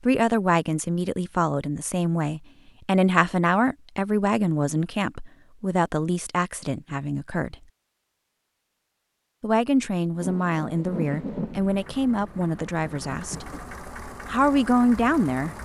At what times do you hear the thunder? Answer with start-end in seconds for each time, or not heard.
10.2-13.7.